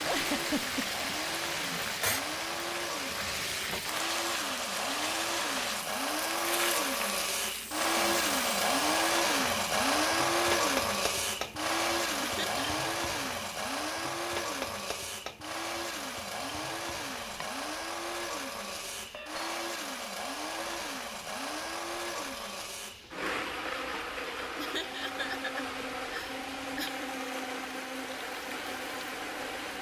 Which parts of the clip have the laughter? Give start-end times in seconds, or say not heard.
0.1-1.1, 12.2-12.7, 24.6-27.1.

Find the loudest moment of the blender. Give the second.
10 s.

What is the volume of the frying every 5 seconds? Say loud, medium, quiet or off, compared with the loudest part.
loud, loud, medium, quiet, quiet, quiet.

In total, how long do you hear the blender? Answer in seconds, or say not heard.
30 s.